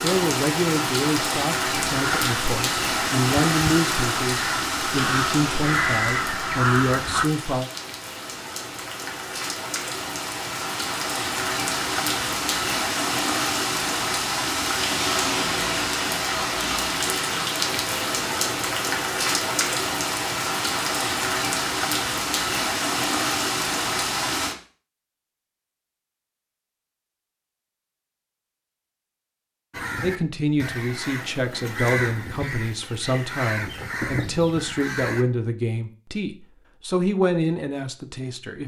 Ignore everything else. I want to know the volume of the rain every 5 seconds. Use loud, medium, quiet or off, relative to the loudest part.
loud, medium, loud, loud, loud, off, off, off.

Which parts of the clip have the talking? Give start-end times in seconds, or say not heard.
0.0-7.7, 30.0-38.6.